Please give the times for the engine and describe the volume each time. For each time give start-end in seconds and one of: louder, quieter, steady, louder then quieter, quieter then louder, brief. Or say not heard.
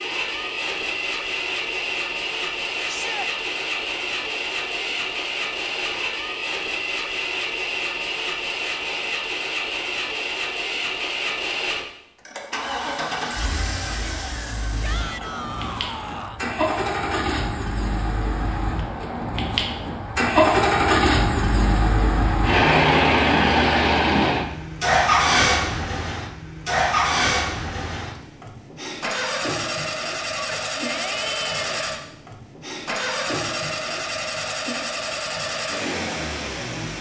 0.0-36.9 louder then quieter.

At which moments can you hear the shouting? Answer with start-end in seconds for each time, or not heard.
2.9-3.3, 14.8-16.4, 30.4-31.9.